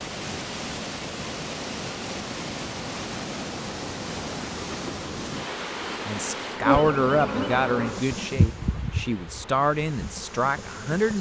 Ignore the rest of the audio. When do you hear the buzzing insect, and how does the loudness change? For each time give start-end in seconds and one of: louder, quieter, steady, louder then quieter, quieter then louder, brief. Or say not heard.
0.0-11.1 louder then quieter.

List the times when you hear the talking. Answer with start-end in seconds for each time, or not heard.
6.0-11.1.